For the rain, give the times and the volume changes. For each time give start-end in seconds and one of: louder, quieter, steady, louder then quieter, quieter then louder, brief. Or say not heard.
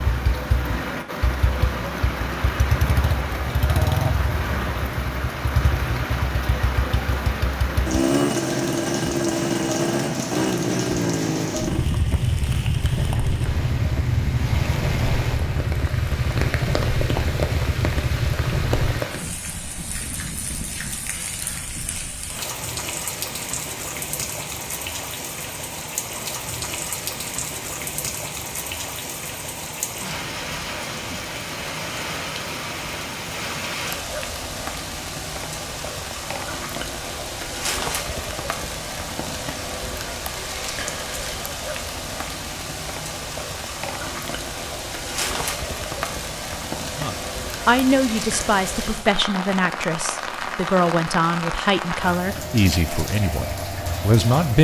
0.0-54.5 steady.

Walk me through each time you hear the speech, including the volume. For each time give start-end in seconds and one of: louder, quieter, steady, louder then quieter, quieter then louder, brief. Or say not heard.
47.0-54.5 quieter.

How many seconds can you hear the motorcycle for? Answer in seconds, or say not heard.
19 s.